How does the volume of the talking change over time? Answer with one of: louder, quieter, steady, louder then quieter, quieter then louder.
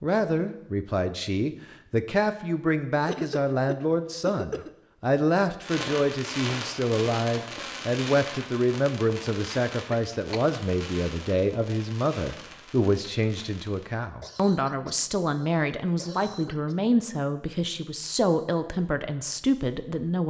steady.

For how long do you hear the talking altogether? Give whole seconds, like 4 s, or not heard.
20 s.